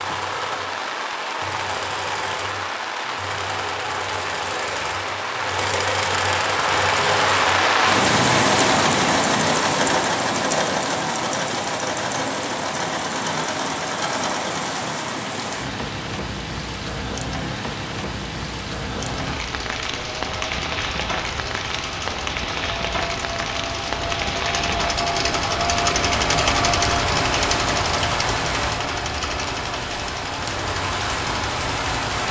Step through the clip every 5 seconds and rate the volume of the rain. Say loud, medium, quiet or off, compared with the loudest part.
medium, loud, medium, medium, medium, medium, medium.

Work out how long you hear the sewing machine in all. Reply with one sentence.
The sewing machine can be heard for 28 seconds in total.